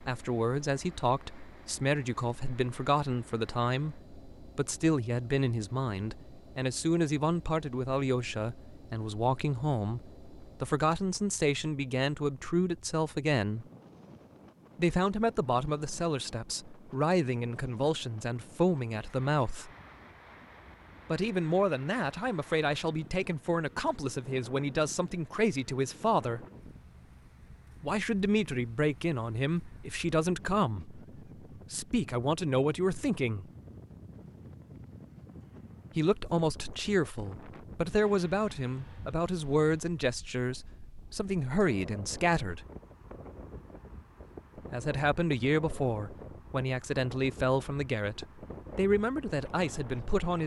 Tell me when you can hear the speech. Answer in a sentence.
You can hear the speech from 0.0 to 13.7 s, from 14.8 to 19.7 s, from 21.1 to 26.4 s, from 27.8 to 33.5 s, from 36.0 to 42.6 s and from 44.7 to 50.4 s.